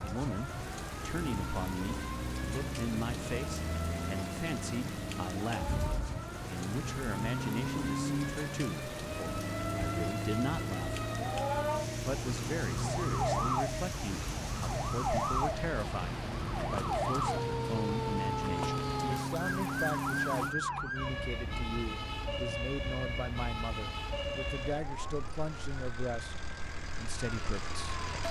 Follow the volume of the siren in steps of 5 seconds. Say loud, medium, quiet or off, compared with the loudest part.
medium, medium, loud, loud, loud, medium.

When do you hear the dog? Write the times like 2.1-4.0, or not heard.
not heard.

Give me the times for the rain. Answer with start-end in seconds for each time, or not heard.
0.0-20.6.